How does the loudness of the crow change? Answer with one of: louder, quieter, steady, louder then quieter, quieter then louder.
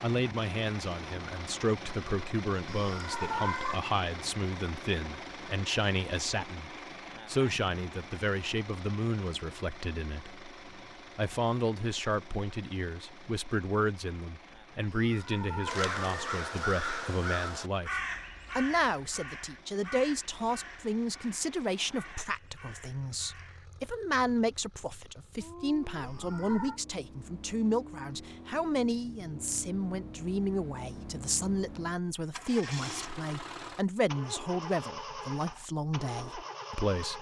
quieter.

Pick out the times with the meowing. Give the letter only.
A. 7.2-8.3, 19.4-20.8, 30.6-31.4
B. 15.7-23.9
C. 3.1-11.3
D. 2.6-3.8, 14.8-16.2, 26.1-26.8
D.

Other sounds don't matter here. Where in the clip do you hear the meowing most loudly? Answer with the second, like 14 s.
3 s.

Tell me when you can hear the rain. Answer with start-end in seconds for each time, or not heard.
not heard.